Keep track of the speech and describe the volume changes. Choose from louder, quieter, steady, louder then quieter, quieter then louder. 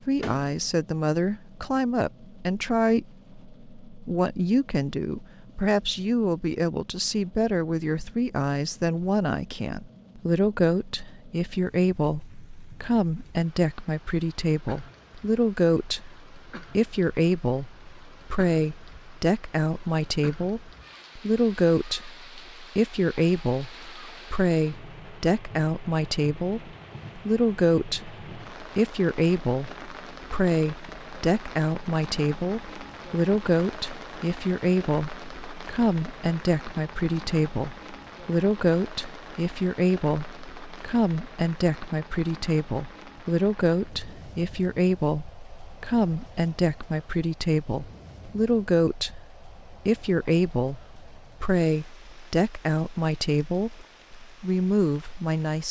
steady.